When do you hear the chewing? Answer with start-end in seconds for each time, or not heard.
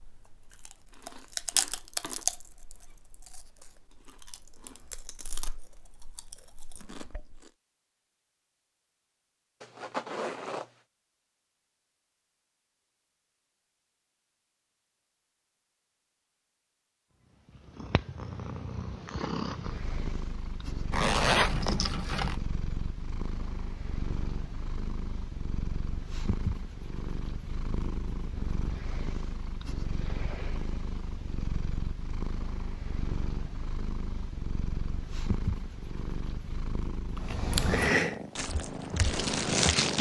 0.0-7.5, 37.1-39.9.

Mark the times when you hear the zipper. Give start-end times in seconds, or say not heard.
9.6-10.7, 20.9-22.4.